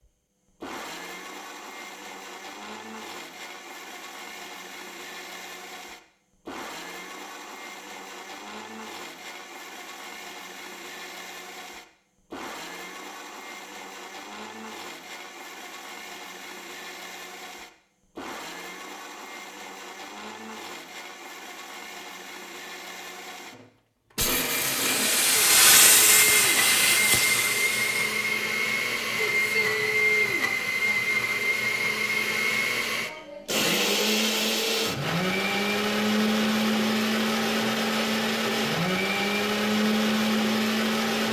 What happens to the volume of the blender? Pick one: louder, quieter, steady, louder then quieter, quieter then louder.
louder.